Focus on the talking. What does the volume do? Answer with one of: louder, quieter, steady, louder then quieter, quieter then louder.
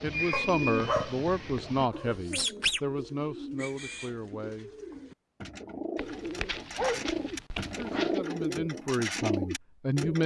quieter then louder.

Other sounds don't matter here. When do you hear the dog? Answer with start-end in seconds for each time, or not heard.
0.3-2.2, 6.0-8.2.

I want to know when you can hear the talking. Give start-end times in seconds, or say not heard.
0.0-4.7, 6.8-10.2.